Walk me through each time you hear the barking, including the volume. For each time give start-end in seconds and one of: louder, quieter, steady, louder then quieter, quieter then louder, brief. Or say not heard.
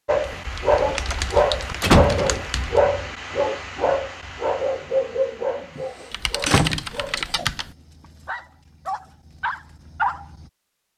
0.1-10.4 quieter then louder.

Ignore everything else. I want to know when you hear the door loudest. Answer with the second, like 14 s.
2 s.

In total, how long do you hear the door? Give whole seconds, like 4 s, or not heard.
2 s.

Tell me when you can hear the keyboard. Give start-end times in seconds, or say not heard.
0.3-2.8, 6.1-7.8.